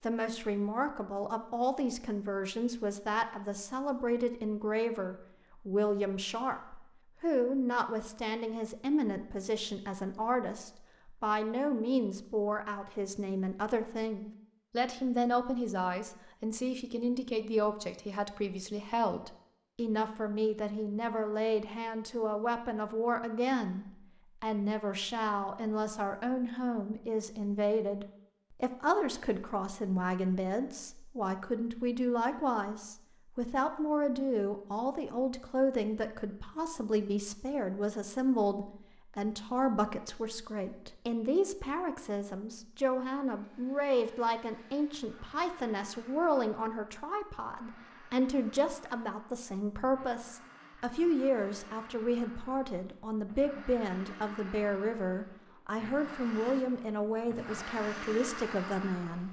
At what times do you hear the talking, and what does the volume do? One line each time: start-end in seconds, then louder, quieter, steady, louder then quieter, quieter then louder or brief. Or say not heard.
0.0-59.2 steady.